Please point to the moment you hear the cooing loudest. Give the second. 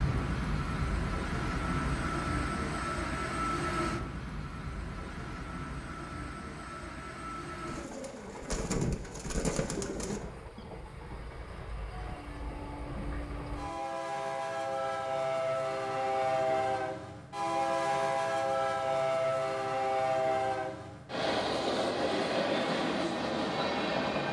9 s.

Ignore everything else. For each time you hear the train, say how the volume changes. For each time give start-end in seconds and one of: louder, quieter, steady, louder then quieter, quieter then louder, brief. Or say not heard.
0.0-24.2 quieter then louder.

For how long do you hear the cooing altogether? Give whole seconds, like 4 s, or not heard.
3 s.